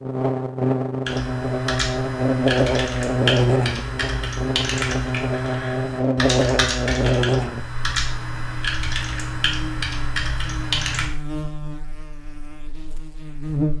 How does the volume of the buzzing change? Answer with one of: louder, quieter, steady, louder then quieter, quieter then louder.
quieter.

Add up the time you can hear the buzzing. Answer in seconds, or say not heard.
14 s.